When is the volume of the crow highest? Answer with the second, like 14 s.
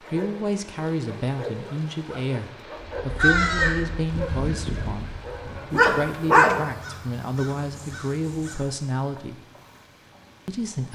3 s.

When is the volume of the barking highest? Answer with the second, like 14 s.
6 s.